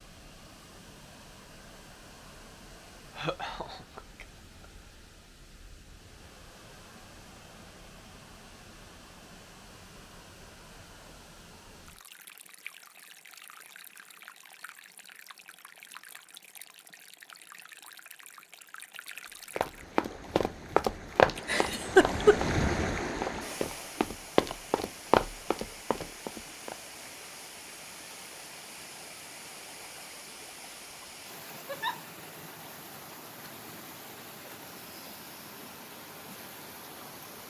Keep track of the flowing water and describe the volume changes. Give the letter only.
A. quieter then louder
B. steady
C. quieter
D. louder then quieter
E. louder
D.